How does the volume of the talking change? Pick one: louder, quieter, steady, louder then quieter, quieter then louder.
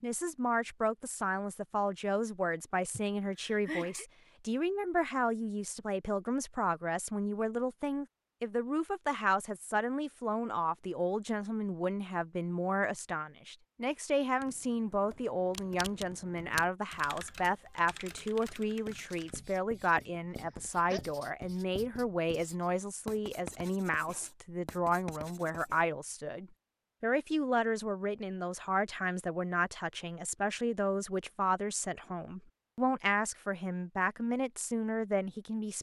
steady.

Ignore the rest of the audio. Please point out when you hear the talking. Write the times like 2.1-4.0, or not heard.
0.0-35.7.